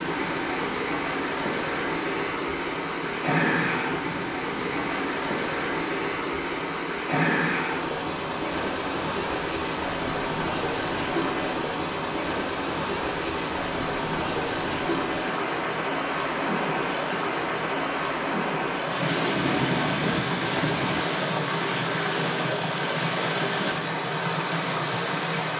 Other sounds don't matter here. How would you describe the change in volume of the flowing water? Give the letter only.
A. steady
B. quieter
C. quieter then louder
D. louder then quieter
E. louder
A.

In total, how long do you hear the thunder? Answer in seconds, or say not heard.
4 s.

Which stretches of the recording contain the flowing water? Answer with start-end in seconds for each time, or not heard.
0.0-25.5.